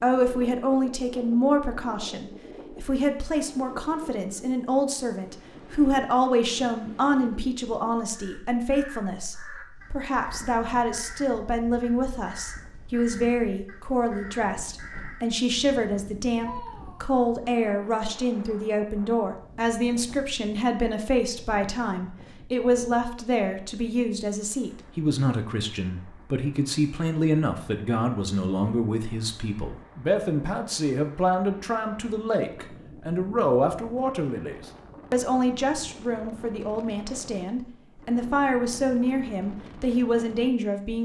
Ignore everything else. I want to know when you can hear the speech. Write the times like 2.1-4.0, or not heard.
0.0-41.0.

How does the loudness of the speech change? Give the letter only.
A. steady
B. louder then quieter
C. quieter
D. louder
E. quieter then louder
A.